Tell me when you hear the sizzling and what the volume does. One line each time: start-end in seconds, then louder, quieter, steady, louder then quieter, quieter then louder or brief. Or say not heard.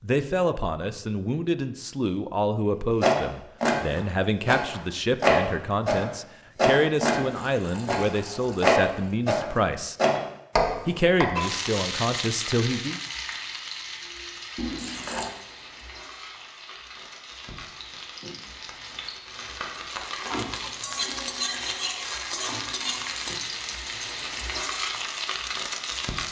11.3-26.2 quieter then louder.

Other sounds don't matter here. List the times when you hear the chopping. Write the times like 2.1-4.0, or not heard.
3.0-11.2.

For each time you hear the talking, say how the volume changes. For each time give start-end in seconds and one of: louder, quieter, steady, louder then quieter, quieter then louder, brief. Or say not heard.
0.0-9.9 steady
10.8-13.0 brief.